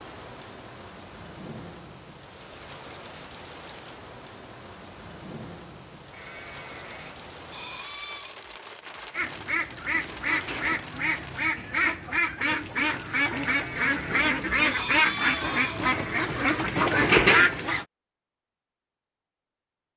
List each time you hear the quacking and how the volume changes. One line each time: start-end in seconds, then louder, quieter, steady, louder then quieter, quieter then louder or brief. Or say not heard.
9.1-17.9 louder.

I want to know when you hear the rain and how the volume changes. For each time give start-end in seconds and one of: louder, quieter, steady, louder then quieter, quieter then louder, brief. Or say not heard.
0.0-11.4 steady.